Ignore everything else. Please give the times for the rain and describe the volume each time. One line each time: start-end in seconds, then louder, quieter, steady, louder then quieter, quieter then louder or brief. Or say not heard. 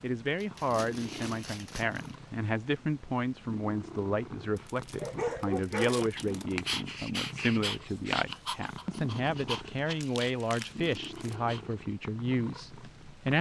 not heard.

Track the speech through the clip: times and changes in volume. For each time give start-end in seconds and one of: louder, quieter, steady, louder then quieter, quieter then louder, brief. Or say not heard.
0.0-13.3 steady.